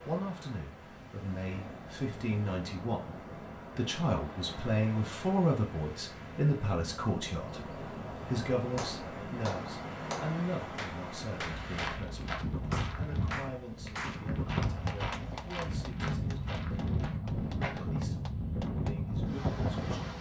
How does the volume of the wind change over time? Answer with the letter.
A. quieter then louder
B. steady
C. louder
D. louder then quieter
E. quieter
C.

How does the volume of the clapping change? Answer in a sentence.
The volume of the clapping goes down.